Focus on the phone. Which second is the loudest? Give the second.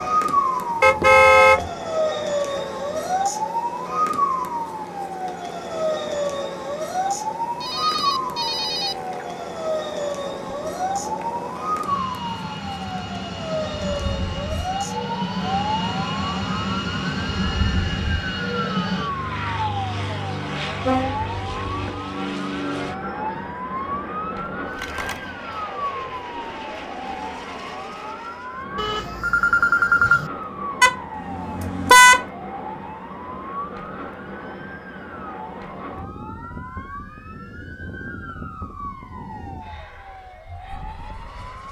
30 s.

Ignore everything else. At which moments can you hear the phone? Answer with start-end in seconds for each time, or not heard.
7.6-9.1, 24.8-25.2, 28.8-30.3.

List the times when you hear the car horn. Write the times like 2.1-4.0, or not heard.
0.8-1.6, 20.8-22.0, 30.8-32.2.